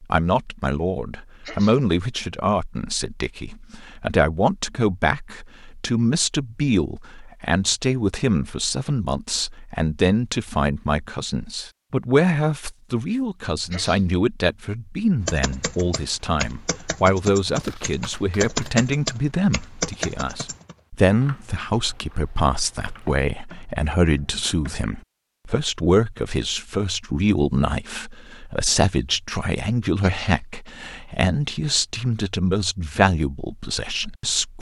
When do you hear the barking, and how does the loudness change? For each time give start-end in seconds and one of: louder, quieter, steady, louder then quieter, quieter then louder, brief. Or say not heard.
not heard.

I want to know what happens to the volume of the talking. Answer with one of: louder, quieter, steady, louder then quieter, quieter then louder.
steady.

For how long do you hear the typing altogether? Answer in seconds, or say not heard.
10 s.